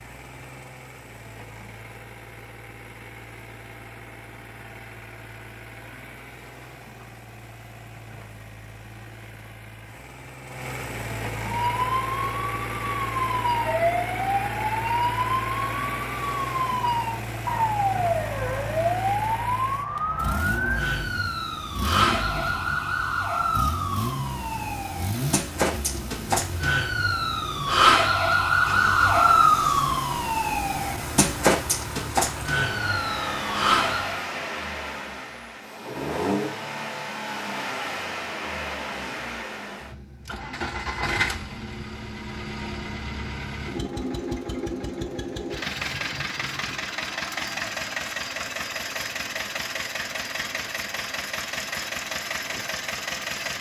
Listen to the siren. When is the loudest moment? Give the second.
29 s.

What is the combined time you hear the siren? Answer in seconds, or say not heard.
23 s.